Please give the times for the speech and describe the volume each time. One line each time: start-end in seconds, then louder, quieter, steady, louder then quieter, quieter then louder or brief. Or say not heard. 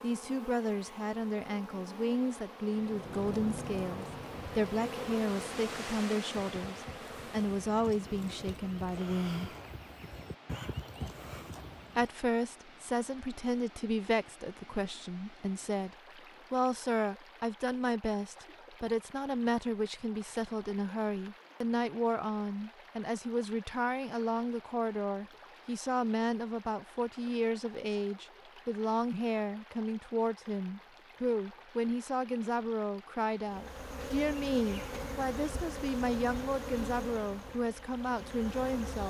0.0-9.5 steady
11.9-39.0 steady.